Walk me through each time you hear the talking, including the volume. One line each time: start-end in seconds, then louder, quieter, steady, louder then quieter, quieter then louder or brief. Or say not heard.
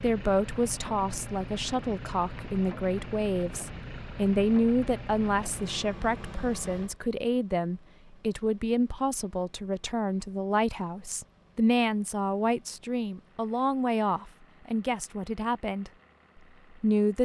0.0-15.9 steady
16.8-17.2 brief.